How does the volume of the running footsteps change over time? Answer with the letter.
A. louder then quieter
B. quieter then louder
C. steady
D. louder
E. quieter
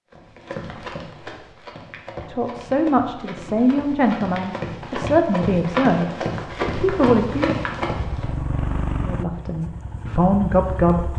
D.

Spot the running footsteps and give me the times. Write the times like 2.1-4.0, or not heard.
0.1-8.3.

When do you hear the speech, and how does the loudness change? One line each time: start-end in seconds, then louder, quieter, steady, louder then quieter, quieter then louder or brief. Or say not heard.
2.2-7.5 steady
9.0-11.1 brief.